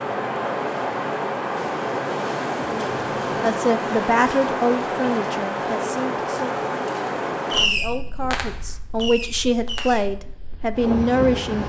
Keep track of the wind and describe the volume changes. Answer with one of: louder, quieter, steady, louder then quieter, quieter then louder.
quieter.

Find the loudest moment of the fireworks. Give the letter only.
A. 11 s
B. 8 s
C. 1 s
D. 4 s
B.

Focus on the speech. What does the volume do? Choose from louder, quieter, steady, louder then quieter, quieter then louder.
quieter then louder.